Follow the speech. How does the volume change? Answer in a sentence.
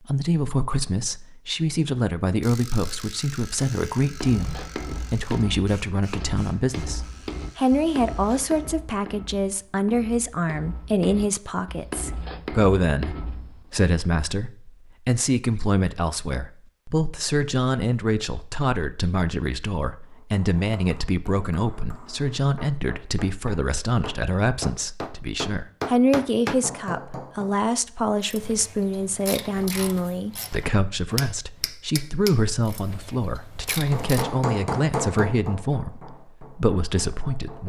The loudness of the speech stays about the same.